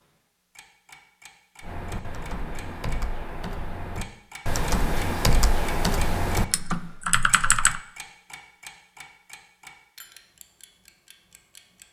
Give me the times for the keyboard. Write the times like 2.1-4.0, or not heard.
1.6-7.8.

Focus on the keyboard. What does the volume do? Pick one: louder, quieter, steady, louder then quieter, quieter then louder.
louder.